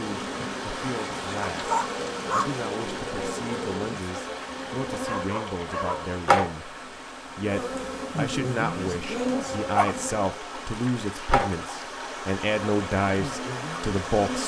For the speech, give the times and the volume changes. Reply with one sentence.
You can hear the speech from 0.0 to 14.4 s, getting louder.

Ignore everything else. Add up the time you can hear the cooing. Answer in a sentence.
The cooing can't be heard in this clip.